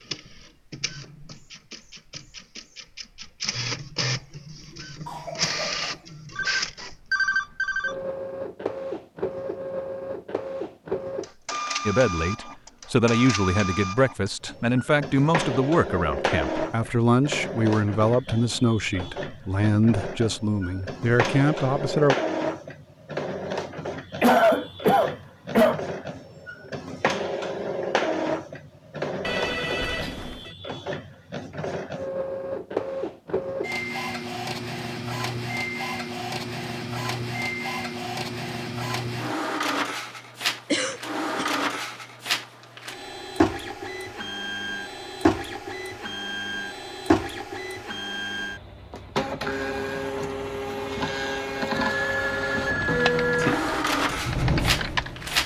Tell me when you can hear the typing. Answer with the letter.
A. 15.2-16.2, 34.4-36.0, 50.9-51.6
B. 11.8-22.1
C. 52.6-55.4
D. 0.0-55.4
C.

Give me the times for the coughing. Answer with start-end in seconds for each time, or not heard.
5.0-6.0, 24.2-25.8, 40.7-41.5.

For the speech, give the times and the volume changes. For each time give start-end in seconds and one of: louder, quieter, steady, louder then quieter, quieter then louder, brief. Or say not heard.
11.8-22.1 steady.